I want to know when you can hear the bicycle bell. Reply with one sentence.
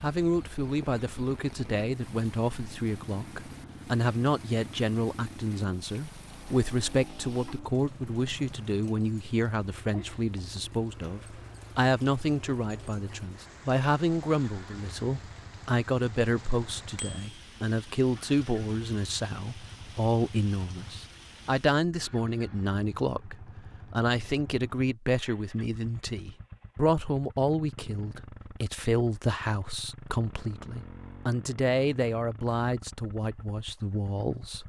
You can hear the bicycle bell from 16.9 to 17.4 s.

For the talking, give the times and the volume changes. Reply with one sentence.
The talking can be heard from 0.0 to 34.6 s, at a steady volume.